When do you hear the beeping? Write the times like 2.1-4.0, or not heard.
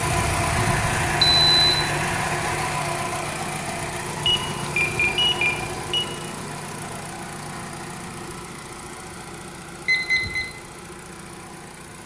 1.2-1.8, 4.2-6.0, 9.8-10.4.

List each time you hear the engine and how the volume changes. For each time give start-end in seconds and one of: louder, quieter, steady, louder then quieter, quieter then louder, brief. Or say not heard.
0.0-12.0 quieter.